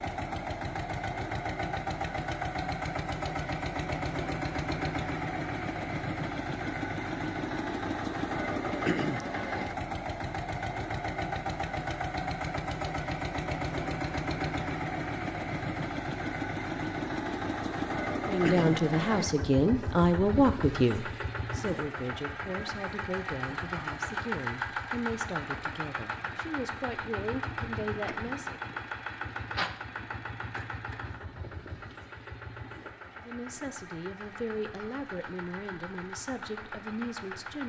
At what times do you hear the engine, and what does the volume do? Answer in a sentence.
The engine can be heard from 0.0 to 37.6 s, getting quieter.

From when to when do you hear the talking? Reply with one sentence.
You can hear the talking from 18.2 to 28.6 s and from 33.2 to 37.6 s.